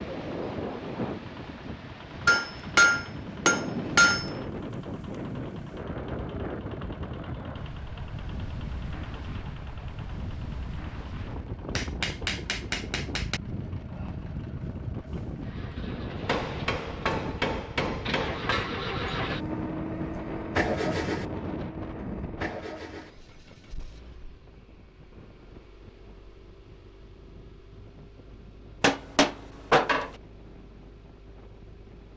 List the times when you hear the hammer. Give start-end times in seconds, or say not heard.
2.2-4.3, 11.8-13.4, 16.2-18.7, 28.8-30.1.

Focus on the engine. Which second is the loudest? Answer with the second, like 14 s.
21 s.